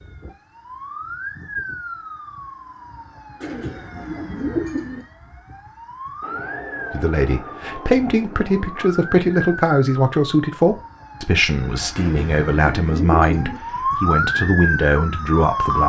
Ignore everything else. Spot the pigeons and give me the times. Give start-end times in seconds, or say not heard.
3.4-5.0, 11.9-13.6.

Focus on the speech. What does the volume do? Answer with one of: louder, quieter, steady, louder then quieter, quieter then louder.
steady.